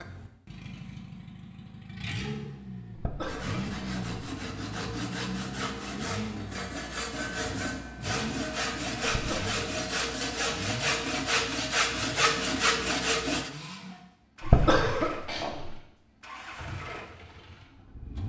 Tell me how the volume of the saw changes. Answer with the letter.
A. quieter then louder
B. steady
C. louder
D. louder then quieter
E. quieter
C.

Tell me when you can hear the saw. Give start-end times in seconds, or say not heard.
3.2-13.5.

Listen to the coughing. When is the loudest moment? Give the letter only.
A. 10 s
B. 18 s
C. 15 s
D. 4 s
C.